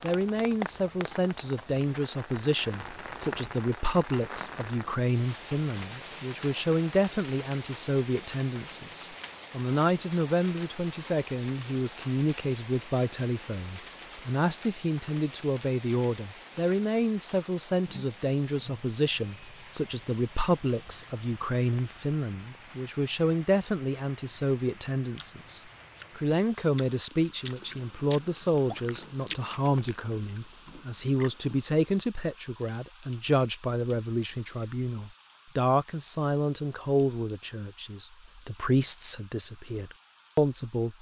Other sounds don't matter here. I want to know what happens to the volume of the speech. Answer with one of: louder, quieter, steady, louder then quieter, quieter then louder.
steady.